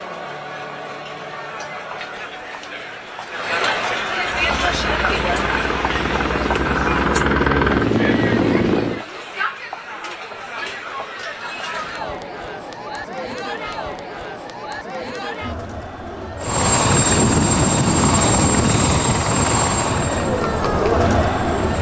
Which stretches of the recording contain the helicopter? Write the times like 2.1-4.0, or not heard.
4.2-9.1, 16.4-21.7.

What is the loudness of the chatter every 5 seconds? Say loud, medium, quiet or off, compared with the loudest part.
medium, medium, medium, medium, loud.